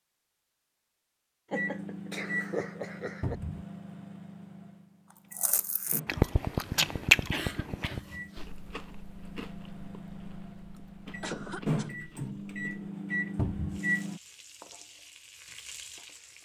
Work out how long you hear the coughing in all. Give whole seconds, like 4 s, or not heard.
4 s.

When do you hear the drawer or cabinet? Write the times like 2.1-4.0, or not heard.
3.2-3.6, 7.9-8.3, 13.3-13.8.